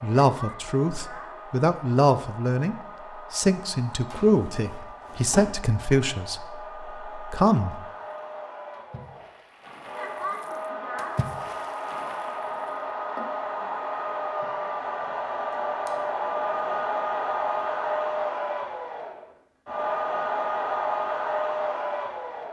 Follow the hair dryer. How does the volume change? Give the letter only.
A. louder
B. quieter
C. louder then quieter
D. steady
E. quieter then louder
A.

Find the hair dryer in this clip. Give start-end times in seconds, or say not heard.
0.0-22.4.